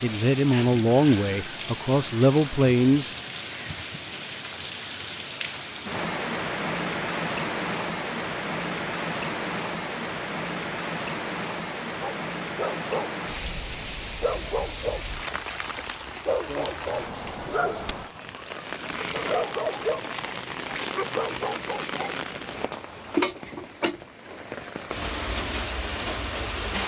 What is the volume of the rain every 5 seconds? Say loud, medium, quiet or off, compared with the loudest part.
loud, loud, loud, medium, loud, loud.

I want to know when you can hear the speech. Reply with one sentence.
You can hear the speech from 0.0 to 3.1 s.